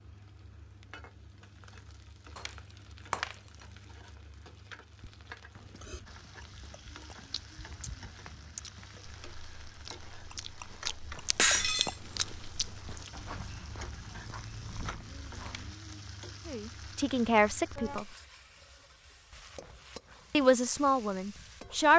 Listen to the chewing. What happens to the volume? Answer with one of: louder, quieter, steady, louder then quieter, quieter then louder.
louder.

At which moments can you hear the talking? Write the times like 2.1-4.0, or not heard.
16.4-18.1, 20.3-21.9.